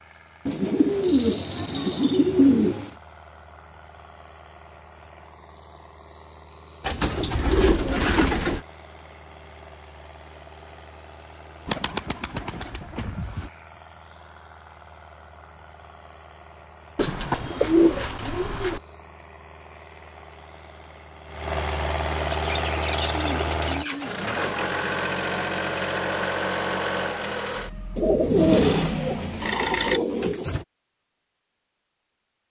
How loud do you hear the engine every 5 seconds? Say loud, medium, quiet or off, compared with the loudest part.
quiet, quiet, quiet, quiet, loud, loud, off.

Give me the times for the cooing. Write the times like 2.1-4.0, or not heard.
0.5-2.9, 6.8-8.6, 11.7-13.5, 16.9-18.8, 22.3-24.1, 27.9-30.6.